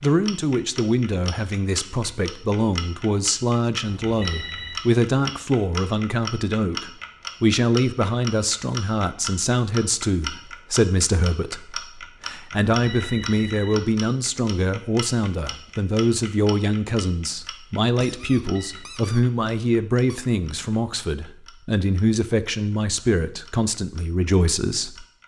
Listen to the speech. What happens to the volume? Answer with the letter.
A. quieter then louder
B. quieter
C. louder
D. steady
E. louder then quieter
D.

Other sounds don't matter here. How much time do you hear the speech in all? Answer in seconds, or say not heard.
25 s.